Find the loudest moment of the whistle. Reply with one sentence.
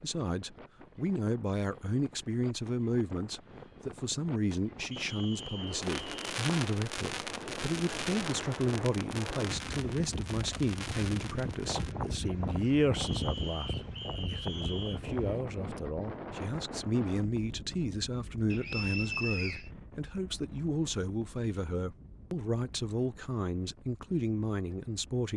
The loudest moment of the whistle is at 19 seconds.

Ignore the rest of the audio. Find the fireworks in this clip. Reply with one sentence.
You can hear the fireworks from 5.8 to 11.9 s.